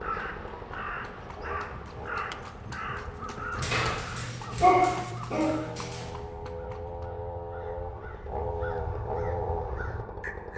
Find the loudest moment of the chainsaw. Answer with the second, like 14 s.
9 s.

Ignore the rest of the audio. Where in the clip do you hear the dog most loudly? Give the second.
5 s.